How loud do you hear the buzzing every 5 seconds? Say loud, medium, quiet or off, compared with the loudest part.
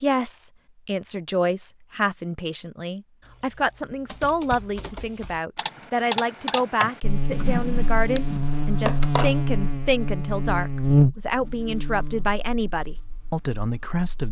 off, loud, loud.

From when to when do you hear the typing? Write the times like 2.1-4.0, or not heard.
3.2-8.4.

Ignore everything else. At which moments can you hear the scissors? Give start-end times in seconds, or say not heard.
8.2-9.3.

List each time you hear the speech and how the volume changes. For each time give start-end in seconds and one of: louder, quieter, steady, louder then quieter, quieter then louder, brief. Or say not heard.
0.0-14.2 steady.